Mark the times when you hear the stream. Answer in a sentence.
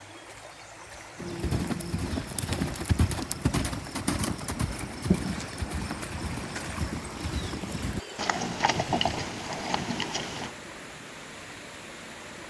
The stream can be heard from 0.0 to 12.4 s.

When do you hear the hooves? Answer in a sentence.
You can hear the hooves from 1.1 to 10.6 s.